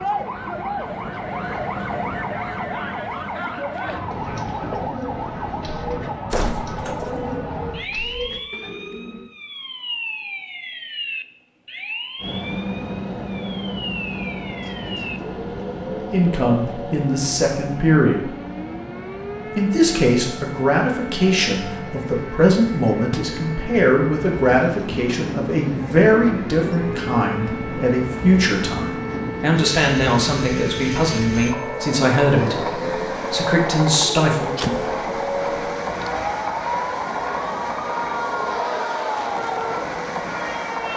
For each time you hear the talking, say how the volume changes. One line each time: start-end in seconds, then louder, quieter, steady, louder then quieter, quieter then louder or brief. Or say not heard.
15.9-18.4 brief
19.6-34.6 steady.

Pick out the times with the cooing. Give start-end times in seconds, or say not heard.
3.2-9.3.